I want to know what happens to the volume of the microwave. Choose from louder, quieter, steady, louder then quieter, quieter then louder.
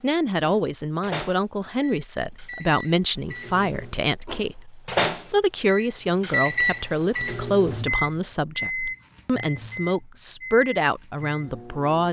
louder then quieter.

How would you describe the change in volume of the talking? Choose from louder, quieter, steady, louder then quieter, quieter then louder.
steady.